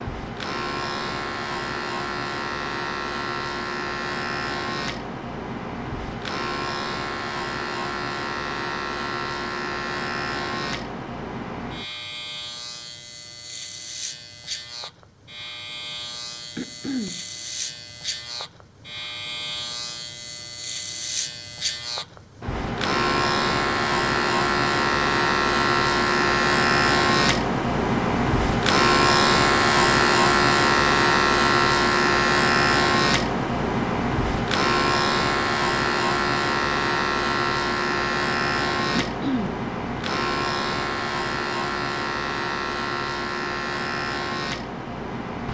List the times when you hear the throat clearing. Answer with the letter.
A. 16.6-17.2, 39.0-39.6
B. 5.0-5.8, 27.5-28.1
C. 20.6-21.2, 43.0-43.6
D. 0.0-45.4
A.